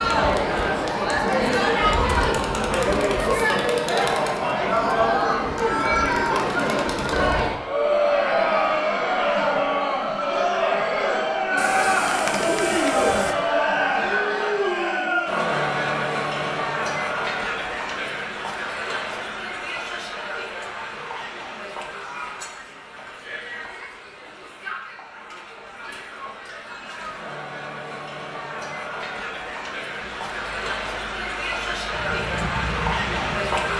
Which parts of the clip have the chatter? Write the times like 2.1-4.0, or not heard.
0.0-33.7.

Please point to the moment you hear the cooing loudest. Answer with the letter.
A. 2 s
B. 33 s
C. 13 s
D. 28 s
C.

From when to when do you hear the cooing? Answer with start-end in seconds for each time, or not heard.
11.6-13.3.